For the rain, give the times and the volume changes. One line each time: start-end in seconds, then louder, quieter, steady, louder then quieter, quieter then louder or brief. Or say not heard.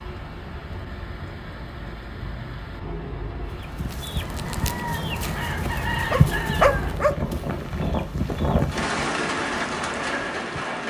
0.0-10.8 louder.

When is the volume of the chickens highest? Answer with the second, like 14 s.
6 s.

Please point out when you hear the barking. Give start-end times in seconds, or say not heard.
6.1-7.2.